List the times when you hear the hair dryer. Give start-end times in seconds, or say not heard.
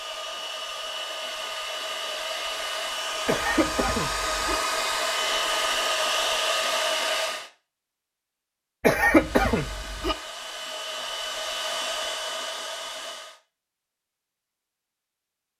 0.0-7.5, 9.1-13.4.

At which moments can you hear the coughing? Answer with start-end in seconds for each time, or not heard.
3.2-4.6, 8.8-10.2.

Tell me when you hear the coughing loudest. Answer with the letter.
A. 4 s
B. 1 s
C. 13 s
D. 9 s
D.